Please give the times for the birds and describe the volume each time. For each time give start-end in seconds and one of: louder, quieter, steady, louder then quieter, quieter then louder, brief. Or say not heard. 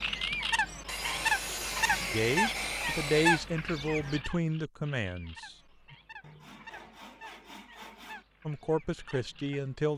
0.0-9.9 quieter.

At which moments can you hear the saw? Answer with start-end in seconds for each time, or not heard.
0.8-3.5, 6.2-8.2.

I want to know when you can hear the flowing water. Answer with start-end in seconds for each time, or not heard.
not heard.